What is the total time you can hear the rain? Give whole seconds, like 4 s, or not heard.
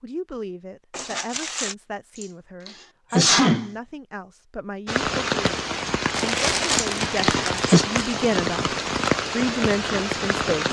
6 s.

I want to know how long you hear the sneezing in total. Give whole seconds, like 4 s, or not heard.
3 s.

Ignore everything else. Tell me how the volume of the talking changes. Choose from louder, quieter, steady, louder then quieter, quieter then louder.
louder.